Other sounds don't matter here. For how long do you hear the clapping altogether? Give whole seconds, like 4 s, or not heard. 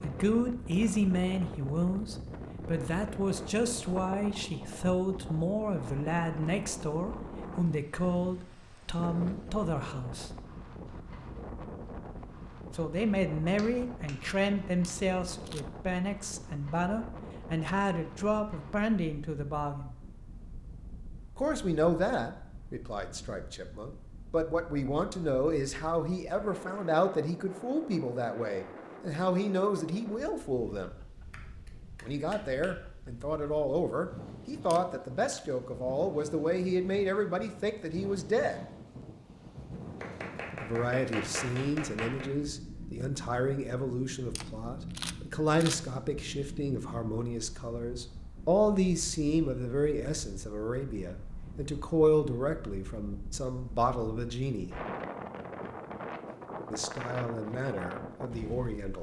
4 s.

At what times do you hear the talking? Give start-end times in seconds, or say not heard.
0.0-10.3, 12.7-19.9, 21.4-30.9, 32.0-38.6, 40.6-54.8, 56.7-58.9.